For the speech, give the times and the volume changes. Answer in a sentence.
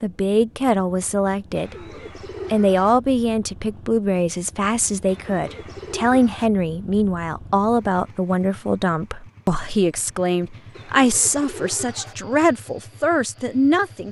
You can hear the speech briefly from 0.0 to 1.8 s; and from 2.5 to 14.0 s, at a steady volume.